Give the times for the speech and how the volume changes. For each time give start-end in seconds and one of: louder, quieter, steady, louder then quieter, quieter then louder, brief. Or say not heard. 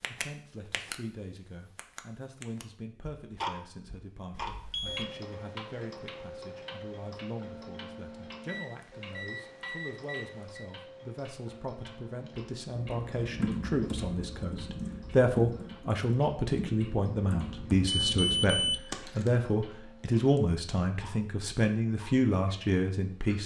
0.1-23.4 louder.